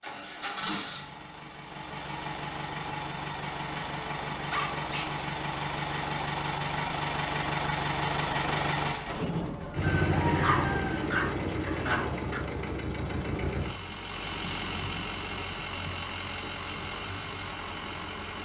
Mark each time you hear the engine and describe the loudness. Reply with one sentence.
The engine can be heard from 0.0 to 18.3 s, getting louder then quieter.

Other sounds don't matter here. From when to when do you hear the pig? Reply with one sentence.
You can't hear the pig here.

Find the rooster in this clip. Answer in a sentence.
You can hear the rooster from 9.3 to 11.1 s.